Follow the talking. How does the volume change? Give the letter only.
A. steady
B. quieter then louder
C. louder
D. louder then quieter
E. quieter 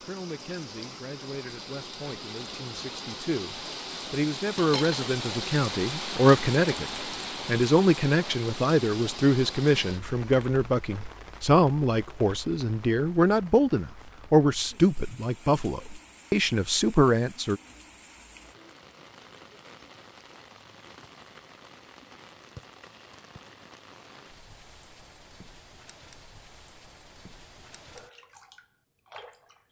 C.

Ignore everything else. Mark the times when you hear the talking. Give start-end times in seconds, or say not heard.
0.0-17.6.